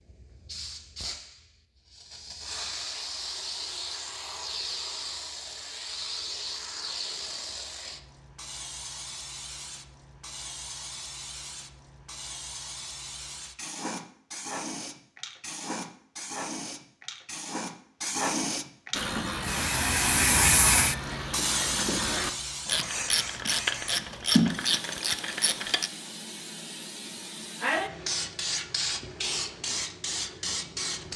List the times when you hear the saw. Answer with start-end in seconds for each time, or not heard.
not heard.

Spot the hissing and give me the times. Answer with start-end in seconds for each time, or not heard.
0.0-31.1.